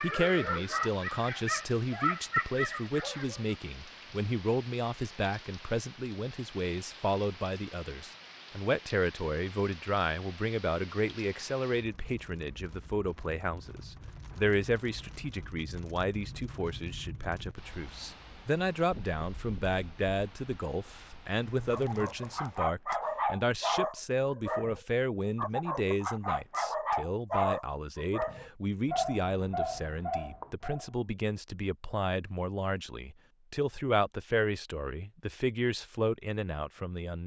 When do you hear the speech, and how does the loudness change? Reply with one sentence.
You can hear the speech from 0.0 to 37.2 s, at a steady volume.